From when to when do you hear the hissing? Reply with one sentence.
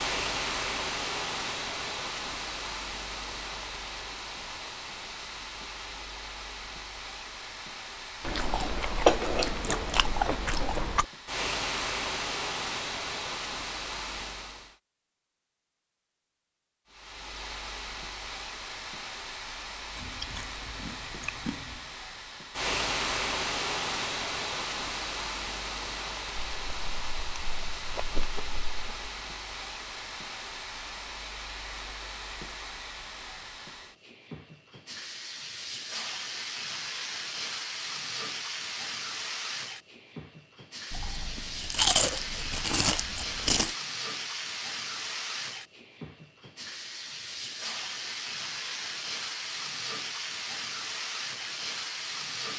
The hissing can be heard from 0.0 to 14.8 s and from 16.9 to 52.5 s.